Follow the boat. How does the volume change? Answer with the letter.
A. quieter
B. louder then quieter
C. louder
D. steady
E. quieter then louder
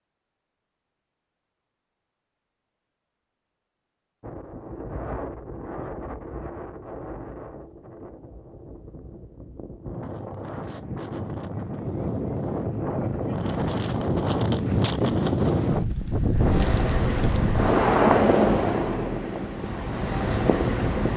E.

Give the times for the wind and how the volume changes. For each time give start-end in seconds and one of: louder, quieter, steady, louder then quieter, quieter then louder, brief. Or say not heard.
4.2-21.1 louder.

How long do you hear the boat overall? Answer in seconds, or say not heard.
5 s.